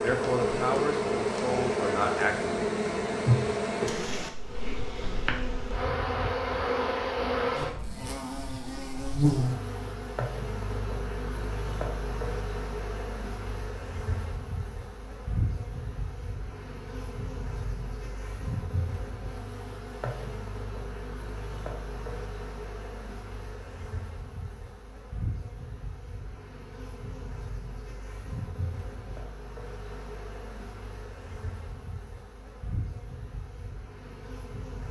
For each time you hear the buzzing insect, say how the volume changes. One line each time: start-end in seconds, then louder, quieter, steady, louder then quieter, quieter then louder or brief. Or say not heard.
0.0-34.8 quieter.